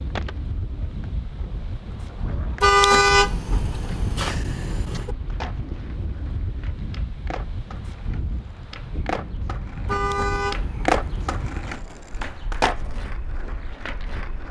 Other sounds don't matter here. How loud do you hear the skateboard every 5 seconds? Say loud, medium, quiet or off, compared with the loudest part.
medium, medium, loud.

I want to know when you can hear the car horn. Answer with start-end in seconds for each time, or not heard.
2.6-5.2, 9.8-11.3.